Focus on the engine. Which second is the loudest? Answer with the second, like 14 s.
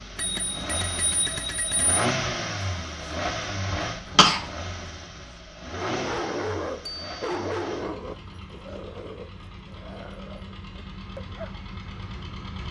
2 s.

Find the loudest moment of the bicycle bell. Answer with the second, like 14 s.
1 s.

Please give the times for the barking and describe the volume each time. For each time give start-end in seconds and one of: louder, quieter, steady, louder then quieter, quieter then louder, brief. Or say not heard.
5.7-11.6 quieter.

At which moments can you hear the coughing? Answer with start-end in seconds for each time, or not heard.
3.7-4.5.